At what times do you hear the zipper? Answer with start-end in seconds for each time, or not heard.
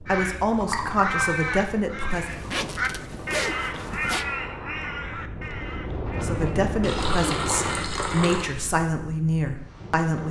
2.1-4.2.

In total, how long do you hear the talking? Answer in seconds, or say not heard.
6 s.